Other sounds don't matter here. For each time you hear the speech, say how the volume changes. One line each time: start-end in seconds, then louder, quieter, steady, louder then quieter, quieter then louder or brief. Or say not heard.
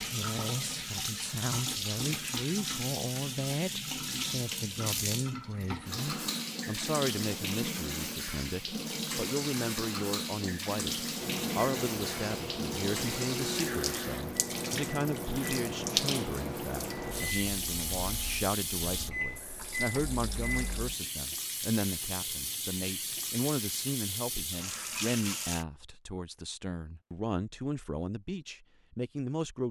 0.1-29.6 steady.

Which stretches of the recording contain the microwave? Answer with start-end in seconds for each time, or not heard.
11.2-20.9.